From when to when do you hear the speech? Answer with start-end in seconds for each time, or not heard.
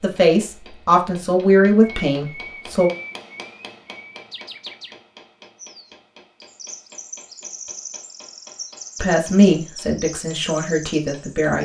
0.0-2.9, 9.0-11.5.